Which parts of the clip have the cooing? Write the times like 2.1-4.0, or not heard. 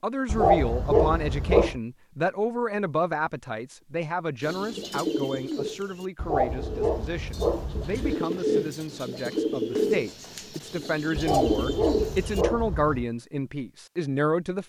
4.4-12.4.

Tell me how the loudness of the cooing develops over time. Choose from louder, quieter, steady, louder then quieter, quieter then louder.
quieter then louder.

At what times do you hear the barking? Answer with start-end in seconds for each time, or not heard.
0.2-1.8, 6.2-8.2, 11.2-13.1.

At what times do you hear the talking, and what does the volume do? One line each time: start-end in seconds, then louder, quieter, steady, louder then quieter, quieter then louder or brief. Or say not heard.
0.0-14.6 quieter then louder.